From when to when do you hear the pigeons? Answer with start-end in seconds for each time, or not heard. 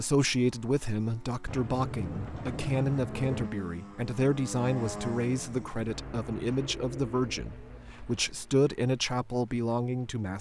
1.4-3.5, 6.5-8.2.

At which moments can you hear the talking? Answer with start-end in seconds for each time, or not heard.
0.0-10.3.